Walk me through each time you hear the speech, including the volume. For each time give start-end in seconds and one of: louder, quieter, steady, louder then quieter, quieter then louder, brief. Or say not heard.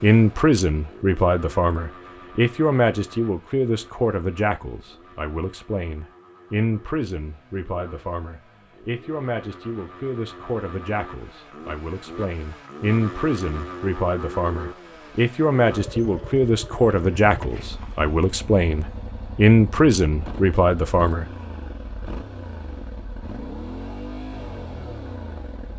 0.0-21.2 quieter then louder.